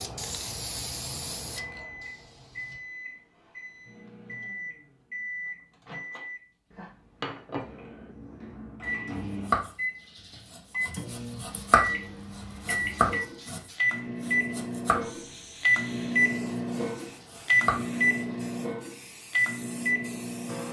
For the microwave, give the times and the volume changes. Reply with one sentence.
You can hear the microwave from 0.2 to 20.6 s, getting louder.